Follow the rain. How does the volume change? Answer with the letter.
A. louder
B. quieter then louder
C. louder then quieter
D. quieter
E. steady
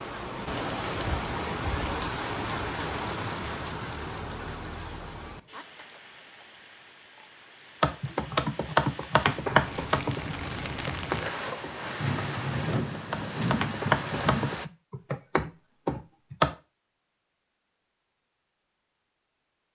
B.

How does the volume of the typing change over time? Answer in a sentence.
The volume of the typing goes down, then up.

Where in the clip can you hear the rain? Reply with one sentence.
The rain can be heard from 0.0 to 14.7 s.